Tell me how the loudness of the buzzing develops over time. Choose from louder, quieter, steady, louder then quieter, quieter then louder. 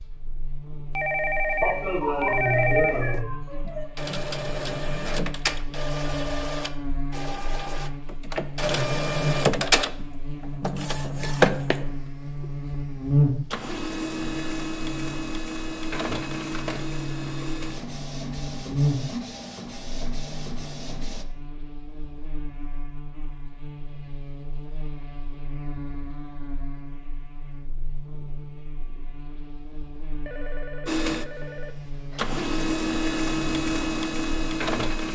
louder then quieter.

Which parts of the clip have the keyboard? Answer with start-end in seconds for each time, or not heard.
not heard.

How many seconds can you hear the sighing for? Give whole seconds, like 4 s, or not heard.
2 s.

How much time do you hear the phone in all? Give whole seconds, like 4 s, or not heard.
4 s.